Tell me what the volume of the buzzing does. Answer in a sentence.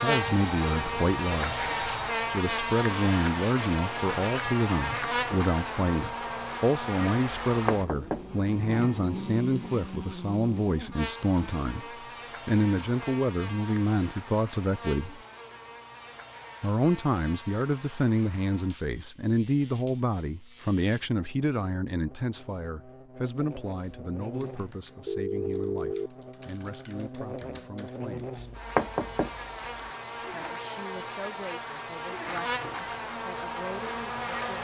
The loudness of the buzzing goes down, then up.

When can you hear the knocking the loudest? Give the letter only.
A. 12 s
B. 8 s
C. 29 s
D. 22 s
C.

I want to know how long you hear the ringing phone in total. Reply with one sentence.
The ringing phone can be heard for 3 seconds in total.